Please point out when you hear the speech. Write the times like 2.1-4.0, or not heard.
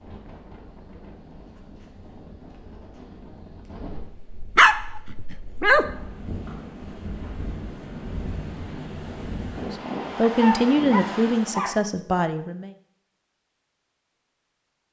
9.6-12.7.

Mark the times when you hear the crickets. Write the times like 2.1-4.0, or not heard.
not heard.